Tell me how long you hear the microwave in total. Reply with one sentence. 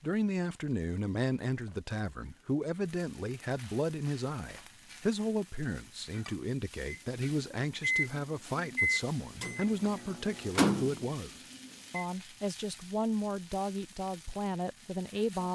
You can hear the microwave for 5 seconds altogether.